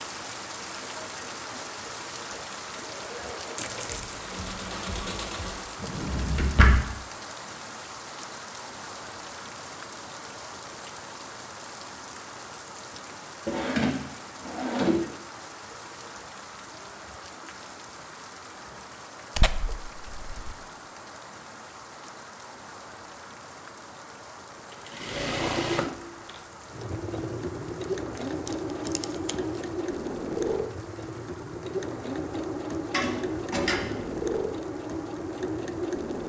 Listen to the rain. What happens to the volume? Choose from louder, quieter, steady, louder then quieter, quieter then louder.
quieter.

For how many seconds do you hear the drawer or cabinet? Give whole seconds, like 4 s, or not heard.
4 s.